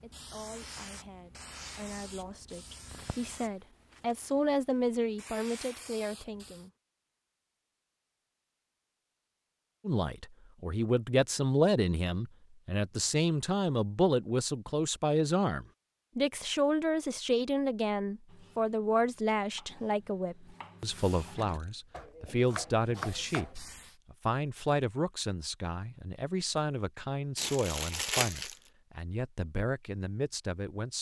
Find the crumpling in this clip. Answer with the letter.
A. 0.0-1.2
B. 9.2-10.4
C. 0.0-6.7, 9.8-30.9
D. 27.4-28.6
D.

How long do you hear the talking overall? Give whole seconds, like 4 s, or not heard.
28 s.